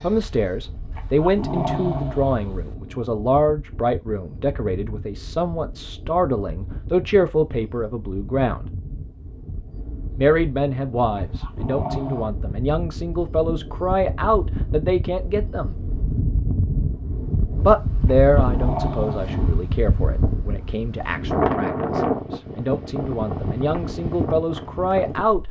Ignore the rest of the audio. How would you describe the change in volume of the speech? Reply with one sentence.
The volume of the speech stays about the same.